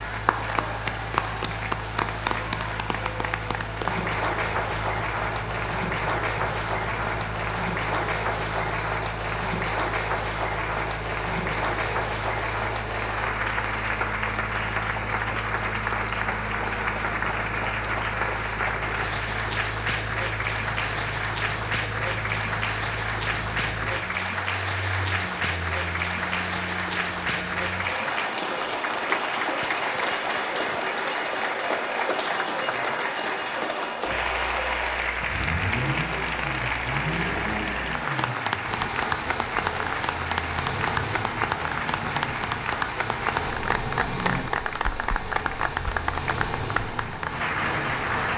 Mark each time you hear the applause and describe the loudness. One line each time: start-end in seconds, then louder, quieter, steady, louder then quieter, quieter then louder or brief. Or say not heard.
0.0-48.3 steady.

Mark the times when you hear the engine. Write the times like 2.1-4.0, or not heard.
0.0-48.3.